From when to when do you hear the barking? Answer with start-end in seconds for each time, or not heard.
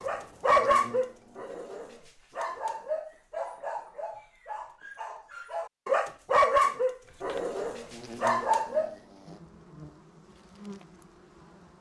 0.0-8.9.